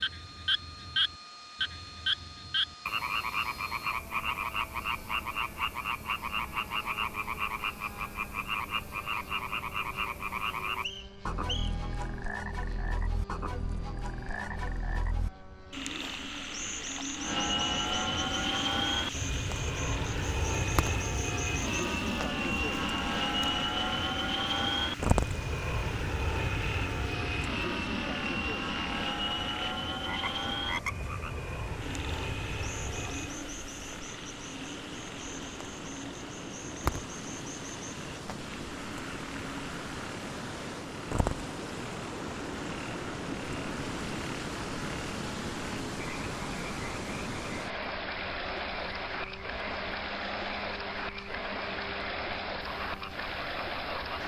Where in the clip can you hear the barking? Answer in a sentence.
The barking can't be heard in this clip.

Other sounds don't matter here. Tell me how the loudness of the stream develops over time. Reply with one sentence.
The loudness of the stream goes up.